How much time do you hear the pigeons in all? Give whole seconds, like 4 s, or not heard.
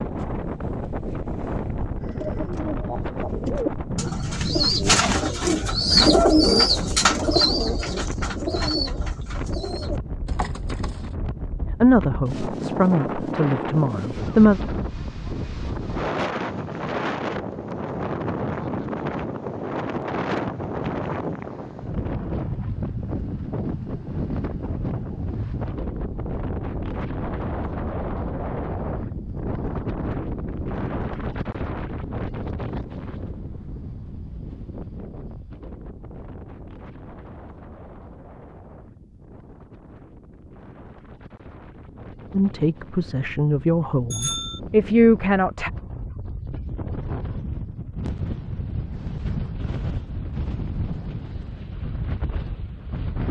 9 s.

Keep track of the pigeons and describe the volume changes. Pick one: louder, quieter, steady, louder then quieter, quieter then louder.
louder then quieter.